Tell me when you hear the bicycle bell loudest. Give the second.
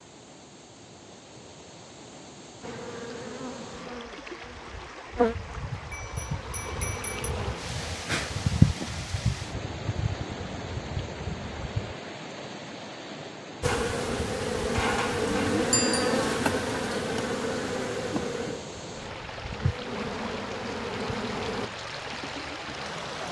16 s.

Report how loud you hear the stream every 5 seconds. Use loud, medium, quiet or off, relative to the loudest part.
medium, loud, loud, loud, loud.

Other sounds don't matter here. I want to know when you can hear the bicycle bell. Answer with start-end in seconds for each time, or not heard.
5.9-7.3, 15.7-16.1.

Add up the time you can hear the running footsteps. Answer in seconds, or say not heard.
not heard.